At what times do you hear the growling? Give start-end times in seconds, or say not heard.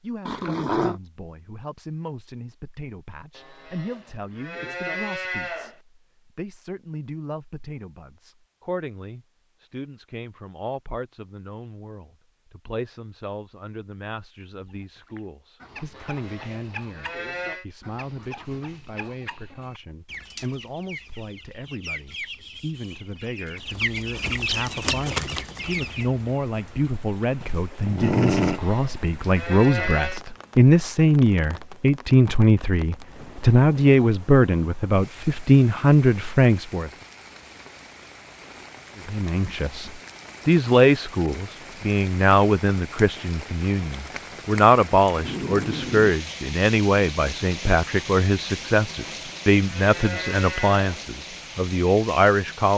0.2-0.9, 27.4-28.6, 45.2-46.1.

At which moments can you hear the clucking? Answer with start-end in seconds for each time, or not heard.
14.6-26.1.